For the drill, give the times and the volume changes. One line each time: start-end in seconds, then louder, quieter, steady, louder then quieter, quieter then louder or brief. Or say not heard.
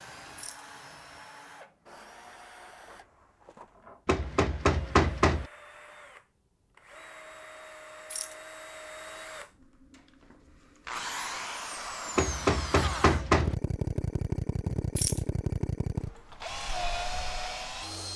0.0-18.1 louder.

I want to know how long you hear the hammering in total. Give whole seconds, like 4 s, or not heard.
3 s.